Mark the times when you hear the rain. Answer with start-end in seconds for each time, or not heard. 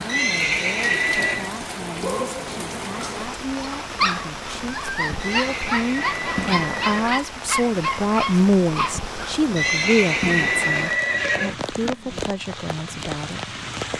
0.0-13.9.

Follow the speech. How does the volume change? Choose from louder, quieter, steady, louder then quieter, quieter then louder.
louder then quieter.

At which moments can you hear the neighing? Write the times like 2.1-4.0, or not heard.
0.1-1.5, 5.2-7.2, 9.6-11.6.